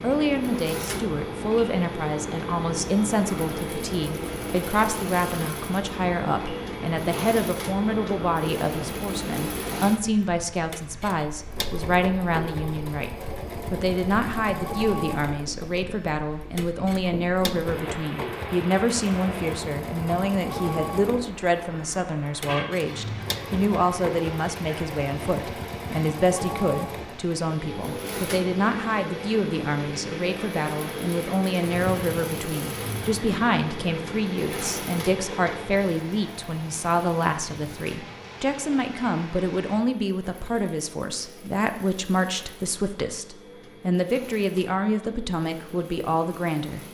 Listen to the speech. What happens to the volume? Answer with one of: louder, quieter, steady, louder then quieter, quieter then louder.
steady.